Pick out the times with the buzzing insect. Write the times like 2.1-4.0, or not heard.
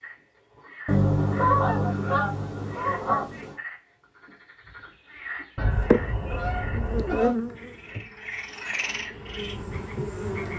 5.8-10.5.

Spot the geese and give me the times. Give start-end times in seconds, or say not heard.
0.8-3.5, 5.5-7.3.